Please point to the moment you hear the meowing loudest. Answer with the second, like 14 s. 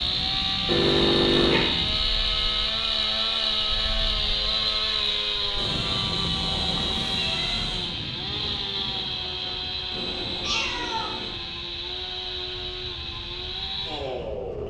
1 s.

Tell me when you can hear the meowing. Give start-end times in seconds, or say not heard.
0.7-1.7, 5.5-8.0, 9.9-11.3.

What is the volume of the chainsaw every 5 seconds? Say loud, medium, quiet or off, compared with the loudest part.
loud, loud, medium.